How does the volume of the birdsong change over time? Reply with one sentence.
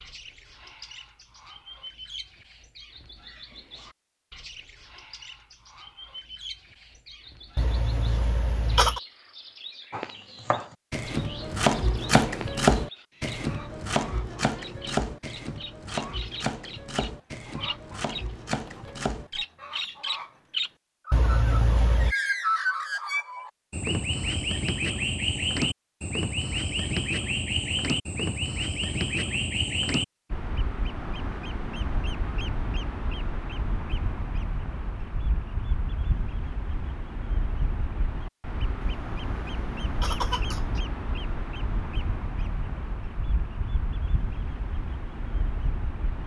The loudness of the birdsong goes up, then down.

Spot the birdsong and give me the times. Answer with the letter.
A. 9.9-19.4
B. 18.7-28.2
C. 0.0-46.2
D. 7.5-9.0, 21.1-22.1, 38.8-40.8
C.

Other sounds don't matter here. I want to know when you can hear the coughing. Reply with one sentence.
You can hear the coughing from 7.5 to 9.0 s, from 21.1 to 22.1 s and from 38.8 to 40.8 s.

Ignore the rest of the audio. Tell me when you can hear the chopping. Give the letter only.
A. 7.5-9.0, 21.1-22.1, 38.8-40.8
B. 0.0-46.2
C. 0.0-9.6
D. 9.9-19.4
D.